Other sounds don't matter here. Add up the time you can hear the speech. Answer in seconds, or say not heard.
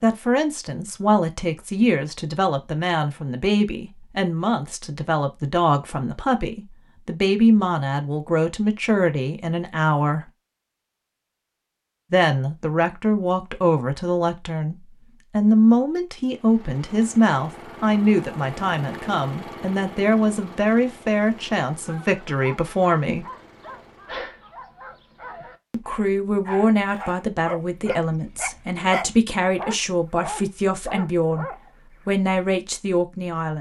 29 s.